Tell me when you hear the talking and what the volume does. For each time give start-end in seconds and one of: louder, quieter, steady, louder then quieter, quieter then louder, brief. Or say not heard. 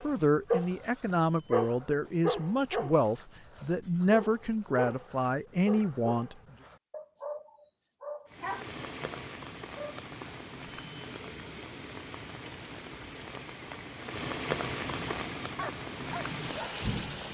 0.0-6.3 steady.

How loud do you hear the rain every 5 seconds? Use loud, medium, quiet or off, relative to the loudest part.
off, medium, loud, loud.